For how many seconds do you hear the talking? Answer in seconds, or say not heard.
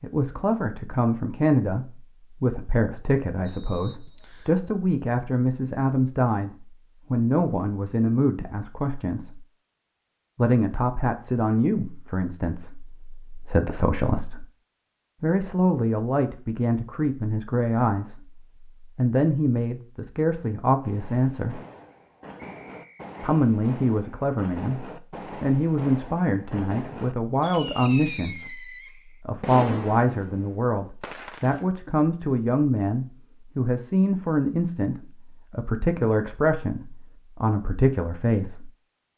35 s.